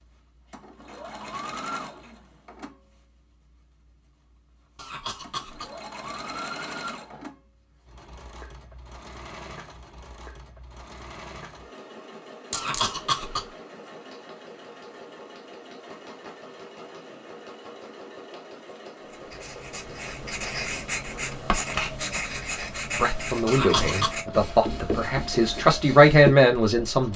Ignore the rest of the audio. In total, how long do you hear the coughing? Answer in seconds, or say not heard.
3 s.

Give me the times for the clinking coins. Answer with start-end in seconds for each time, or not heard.
12.5-12.9.